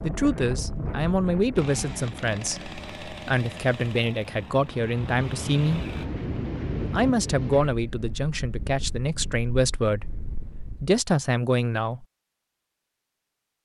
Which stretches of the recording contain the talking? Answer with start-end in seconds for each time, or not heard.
0.0-5.8, 6.8-12.1.